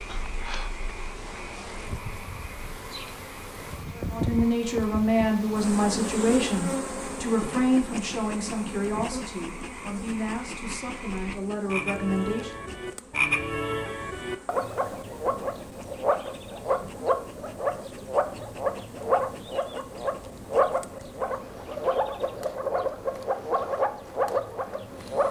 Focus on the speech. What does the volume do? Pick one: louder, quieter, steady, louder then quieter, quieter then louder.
quieter.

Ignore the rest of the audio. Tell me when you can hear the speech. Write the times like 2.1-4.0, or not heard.
4.1-12.5.